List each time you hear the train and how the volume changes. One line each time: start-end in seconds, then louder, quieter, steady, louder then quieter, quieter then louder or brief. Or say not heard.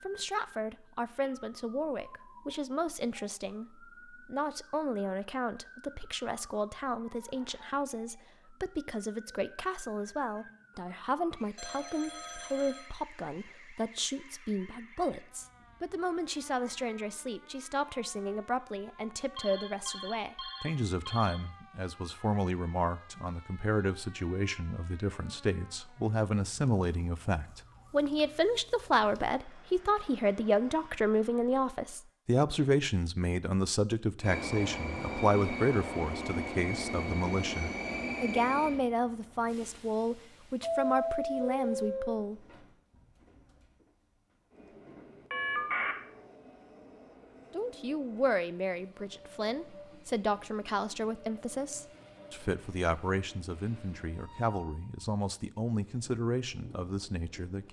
34.2-57.6 quieter.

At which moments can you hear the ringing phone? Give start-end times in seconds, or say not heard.
11.6-12.9, 19.4-21.4, 45.3-46.0.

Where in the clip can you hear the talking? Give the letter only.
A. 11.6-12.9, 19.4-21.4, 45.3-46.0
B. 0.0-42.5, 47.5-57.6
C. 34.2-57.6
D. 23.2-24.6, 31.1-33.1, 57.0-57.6
B.